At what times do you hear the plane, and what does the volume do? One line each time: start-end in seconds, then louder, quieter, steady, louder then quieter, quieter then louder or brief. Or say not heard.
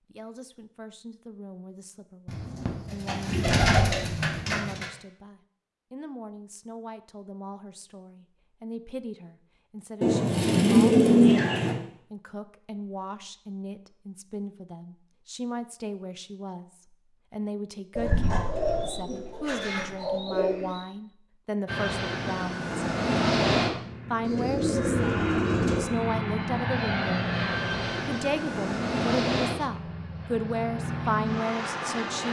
21.6-32.2 quieter.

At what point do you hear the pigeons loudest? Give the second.
11 s.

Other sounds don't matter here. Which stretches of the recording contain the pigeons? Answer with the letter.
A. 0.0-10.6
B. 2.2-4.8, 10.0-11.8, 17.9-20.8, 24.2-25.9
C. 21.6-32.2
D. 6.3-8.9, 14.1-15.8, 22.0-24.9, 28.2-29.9
B.